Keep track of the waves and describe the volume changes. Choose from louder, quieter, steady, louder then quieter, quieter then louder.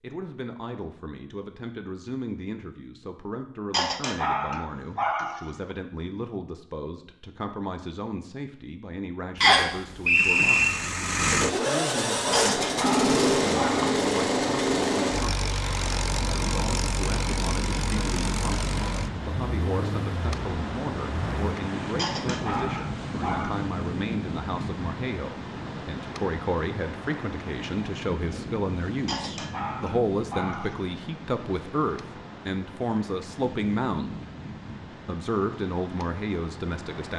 quieter.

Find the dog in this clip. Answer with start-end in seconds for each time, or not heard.
3.7-5.8, 12.3-13.8, 21.9-23.6, 29.1-30.9.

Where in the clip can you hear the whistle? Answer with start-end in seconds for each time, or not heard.
9.4-10.7.